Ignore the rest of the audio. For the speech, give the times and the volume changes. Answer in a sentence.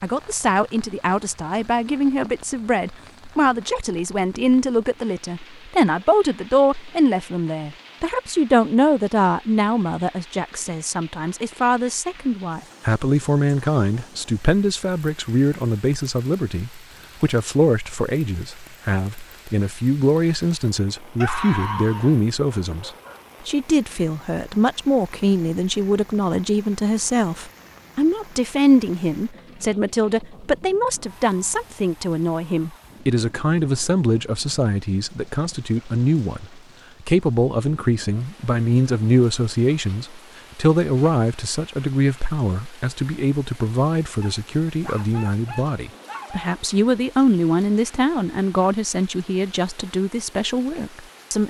The speech can be heard from 0.0 to 51.4 s, at a steady volume.